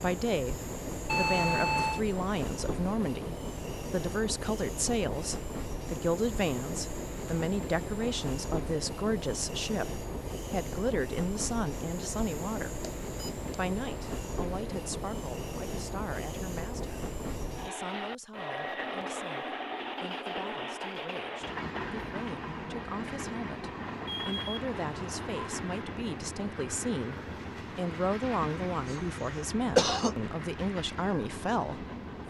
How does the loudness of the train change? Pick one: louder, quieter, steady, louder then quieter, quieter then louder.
steady.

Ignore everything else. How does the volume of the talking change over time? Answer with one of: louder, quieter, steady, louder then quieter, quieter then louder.
quieter then louder.